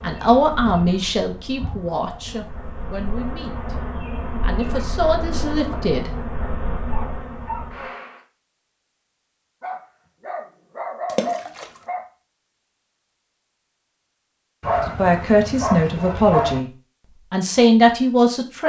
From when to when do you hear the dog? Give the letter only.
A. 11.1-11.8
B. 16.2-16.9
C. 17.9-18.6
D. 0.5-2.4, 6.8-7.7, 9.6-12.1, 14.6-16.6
D.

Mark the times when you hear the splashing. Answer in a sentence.
The splashing can be heard from 11.1 to 11.8 s.